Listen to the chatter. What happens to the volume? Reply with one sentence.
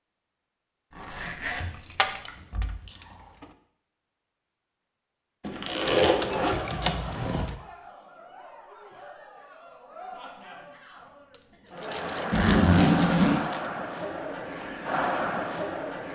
The volume of the chatter goes up.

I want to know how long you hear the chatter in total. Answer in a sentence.
The chatter can be heard for 10 seconds in total.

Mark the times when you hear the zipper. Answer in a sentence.
The zipper can be heard from 0.9 to 2.4 s, from 5.4 to 6.6 s and from 12.3 to 13.4 s.